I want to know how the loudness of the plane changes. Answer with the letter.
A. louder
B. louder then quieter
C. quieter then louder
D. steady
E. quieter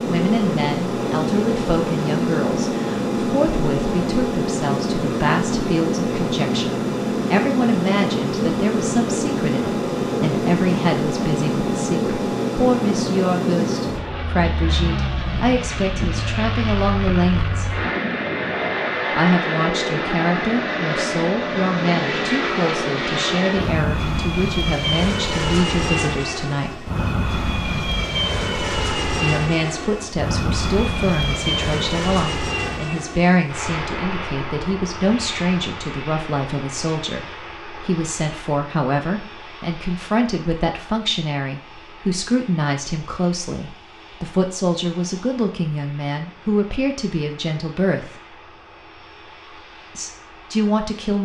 E.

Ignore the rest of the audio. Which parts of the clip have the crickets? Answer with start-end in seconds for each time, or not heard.
not heard.